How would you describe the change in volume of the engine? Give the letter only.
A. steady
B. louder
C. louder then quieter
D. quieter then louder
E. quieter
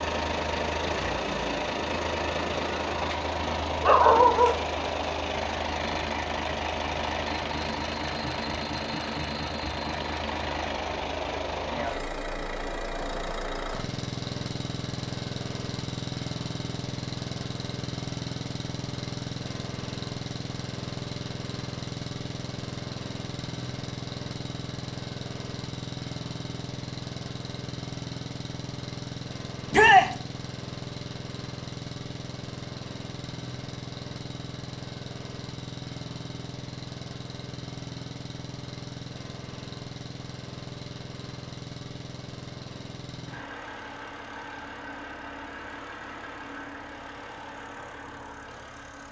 E.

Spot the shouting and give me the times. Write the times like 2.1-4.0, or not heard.
29.7-30.1.